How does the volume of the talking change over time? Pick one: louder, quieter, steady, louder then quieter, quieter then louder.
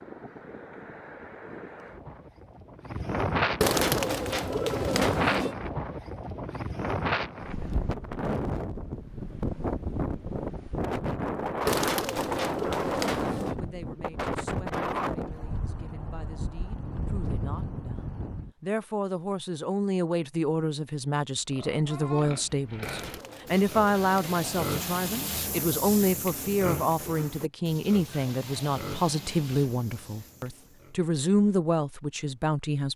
louder.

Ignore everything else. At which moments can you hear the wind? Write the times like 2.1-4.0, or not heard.
0.0-18.5.